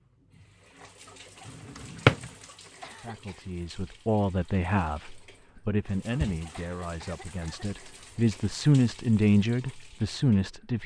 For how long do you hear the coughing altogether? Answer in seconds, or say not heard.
2 s.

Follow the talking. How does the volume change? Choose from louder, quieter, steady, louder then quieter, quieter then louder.
quieter then louder.